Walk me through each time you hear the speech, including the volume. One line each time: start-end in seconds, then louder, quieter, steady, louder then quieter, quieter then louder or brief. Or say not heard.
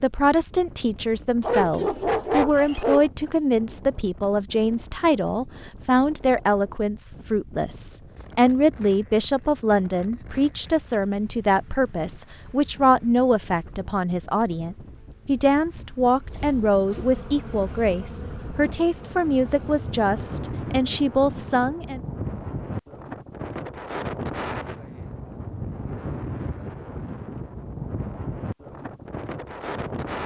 0.0-22.0 steady.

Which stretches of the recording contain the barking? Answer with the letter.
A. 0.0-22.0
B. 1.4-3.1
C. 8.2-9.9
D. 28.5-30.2
B.